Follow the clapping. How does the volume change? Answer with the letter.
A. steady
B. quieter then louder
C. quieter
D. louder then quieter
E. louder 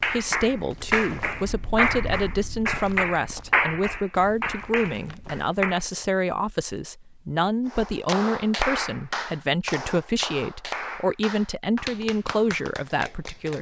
C.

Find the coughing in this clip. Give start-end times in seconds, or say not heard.
not heard.